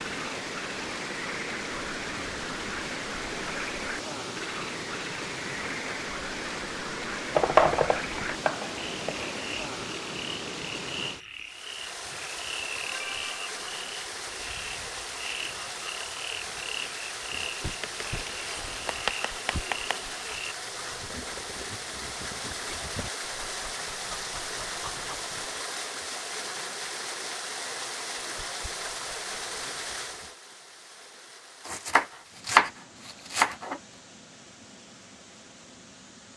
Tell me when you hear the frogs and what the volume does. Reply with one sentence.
You can hear the frogs from 0.0 to 20.6 s, at a steady volume.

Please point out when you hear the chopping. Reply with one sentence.
You can hear the chopping from 7.3 to 9.3 s, from 17.8 to 19.9 s and from 31.6 to 33.8 s.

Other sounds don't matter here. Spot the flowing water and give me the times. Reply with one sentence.
The flowing water can be heard from 0.0 to 36.3 s.